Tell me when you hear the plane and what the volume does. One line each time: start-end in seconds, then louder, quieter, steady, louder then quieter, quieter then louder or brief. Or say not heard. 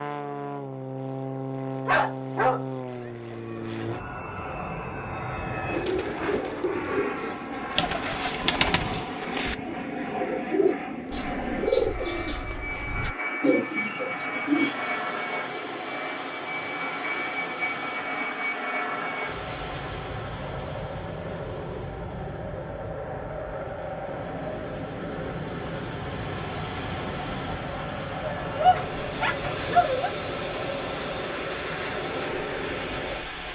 0.0-33.4 steady.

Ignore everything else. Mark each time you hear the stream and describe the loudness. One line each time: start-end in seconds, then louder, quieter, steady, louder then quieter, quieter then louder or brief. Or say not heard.
14.3-33.4 quieter then louder.